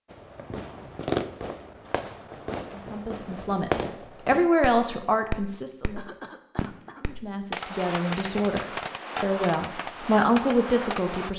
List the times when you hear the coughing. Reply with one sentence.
You can hear the coughing from 6.0 to 7.0 s.